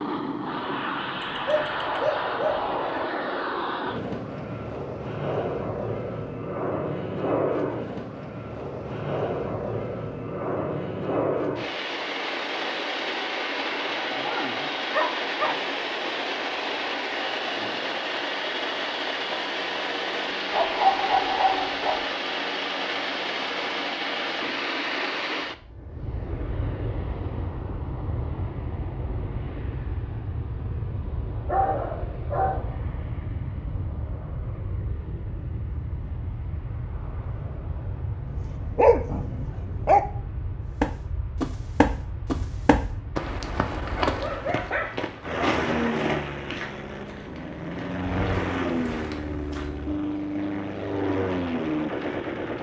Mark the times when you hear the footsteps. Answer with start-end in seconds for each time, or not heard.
40.8-49.9.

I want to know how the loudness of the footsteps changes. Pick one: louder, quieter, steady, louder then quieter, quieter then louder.
quieter.